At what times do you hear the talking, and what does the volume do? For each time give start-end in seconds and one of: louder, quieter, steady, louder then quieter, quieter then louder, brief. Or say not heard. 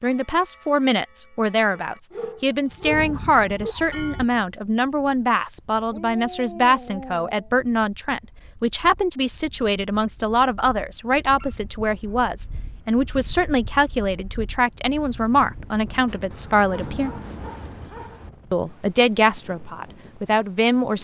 0.0-17.1 steady
18.5-20.9 brief.